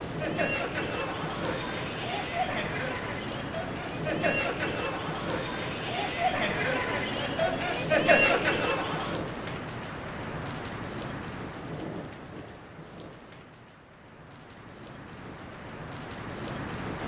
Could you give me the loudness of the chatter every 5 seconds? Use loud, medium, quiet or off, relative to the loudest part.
medium, loud, off, off.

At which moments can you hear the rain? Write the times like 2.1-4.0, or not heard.
0.0-17.0.